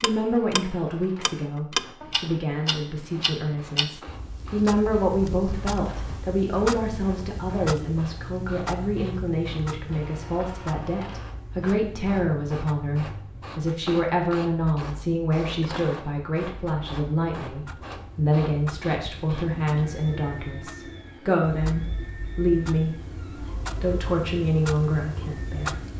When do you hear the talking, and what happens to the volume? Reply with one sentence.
You can hear the talking from 0.0 to 25.8 s, at a steady volume.